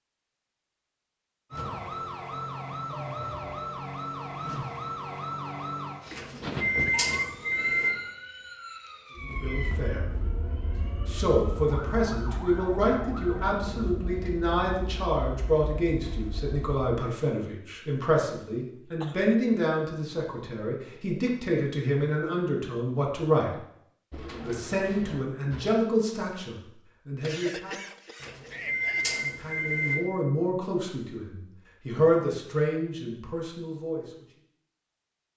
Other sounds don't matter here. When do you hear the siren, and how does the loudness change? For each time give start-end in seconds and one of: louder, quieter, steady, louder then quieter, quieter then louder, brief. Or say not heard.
1.5-13.6 quieter.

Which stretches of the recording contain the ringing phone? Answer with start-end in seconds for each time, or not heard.
6.2-7.9, 28.2-29.9.